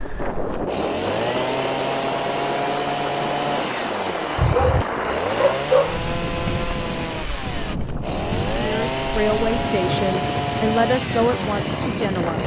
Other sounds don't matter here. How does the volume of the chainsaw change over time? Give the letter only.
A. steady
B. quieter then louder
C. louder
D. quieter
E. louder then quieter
A.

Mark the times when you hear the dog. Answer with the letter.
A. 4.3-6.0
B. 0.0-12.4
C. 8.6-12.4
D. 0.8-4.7
A.